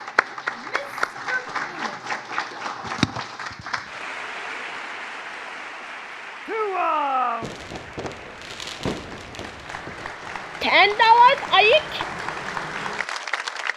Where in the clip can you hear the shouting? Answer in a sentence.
The shouting can be heard from 0.6 to 2.0 s, from 6.5 to 7.5 s and from 10.6 to 12.1 s.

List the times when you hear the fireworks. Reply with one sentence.
You can hear the fireworks from 7.4 to 10.3 s.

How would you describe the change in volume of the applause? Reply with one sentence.
The volume of the applause goes down, then up.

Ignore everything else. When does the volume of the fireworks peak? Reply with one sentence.
The loudest moment of the fireworks is at 9 seconds.